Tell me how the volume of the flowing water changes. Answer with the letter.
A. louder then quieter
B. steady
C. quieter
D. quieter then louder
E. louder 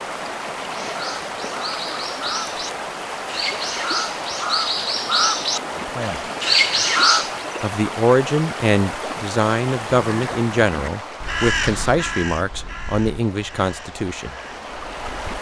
C.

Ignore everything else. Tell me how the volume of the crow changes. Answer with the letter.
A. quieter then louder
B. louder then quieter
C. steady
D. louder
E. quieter
B.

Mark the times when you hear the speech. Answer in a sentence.
The speech can be heard from 5.8 to 6.2 s and from 7.6 to 14.3 s.